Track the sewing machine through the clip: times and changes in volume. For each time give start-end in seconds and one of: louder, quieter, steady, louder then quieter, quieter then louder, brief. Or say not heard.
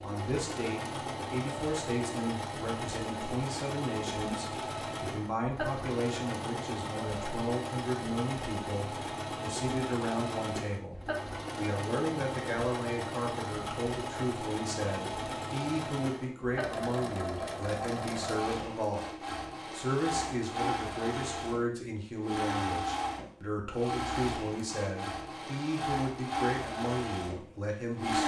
0.0-28.2 steady.